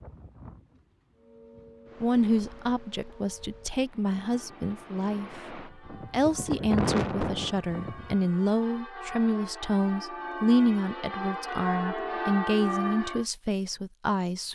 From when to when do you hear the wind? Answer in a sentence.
The wind can be heard from 0.0 to 8.2 s.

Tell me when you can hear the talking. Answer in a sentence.
The talking can be heard from 2.0 to 14.5 s.